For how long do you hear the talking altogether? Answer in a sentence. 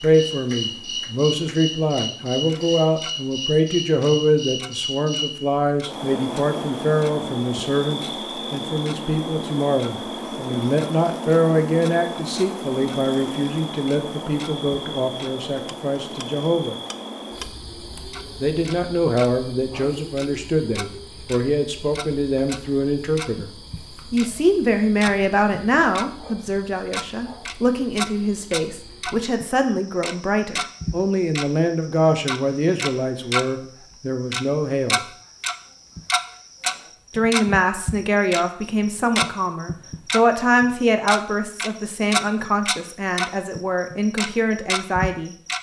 The talking can be heard for 41 seconds in total.